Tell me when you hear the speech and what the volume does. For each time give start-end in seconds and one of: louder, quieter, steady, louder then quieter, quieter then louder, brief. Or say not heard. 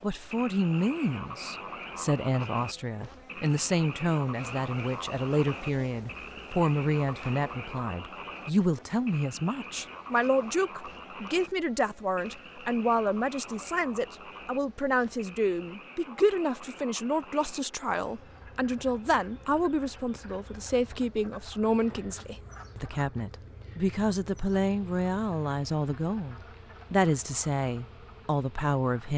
0.0-29.1 steady.